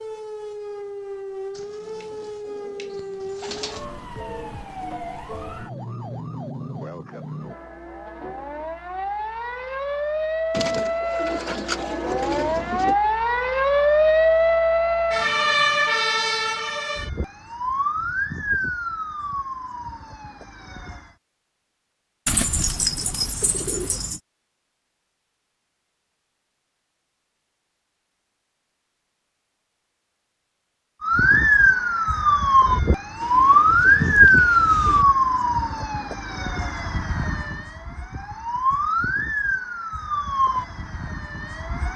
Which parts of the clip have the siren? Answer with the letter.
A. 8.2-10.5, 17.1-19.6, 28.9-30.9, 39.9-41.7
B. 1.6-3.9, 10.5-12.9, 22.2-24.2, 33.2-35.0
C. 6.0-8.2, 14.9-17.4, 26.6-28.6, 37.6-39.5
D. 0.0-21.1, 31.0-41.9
D.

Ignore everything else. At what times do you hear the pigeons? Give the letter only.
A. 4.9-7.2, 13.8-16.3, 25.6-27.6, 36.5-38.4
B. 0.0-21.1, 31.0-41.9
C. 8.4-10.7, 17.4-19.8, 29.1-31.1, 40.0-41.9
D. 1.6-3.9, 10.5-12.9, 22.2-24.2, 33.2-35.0
D.